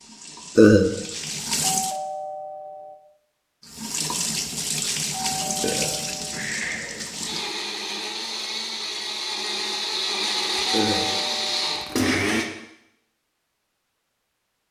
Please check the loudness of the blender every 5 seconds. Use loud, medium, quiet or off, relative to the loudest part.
off, medium, loud.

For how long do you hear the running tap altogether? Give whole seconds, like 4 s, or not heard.
6 s.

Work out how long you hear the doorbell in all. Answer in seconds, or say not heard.
4 s.